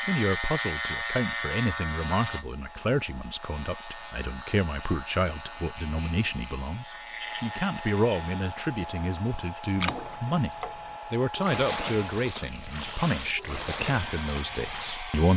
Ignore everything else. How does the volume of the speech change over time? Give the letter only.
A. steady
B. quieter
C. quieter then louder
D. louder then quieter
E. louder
A.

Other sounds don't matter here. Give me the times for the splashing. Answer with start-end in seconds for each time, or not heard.
9.6-15.1.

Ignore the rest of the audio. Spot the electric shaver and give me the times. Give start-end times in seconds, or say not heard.
0.0-8.7.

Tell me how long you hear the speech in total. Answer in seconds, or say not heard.
15 s.